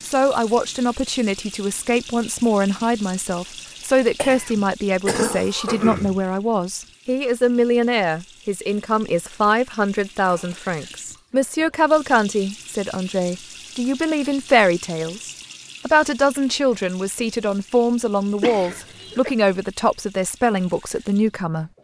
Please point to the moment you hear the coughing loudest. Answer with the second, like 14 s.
5 s.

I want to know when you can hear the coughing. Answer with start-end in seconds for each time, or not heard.
4.2-6.2, 18.4-19.4.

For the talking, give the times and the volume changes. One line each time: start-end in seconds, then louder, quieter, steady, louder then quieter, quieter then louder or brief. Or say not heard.
0.0-21.7 steady.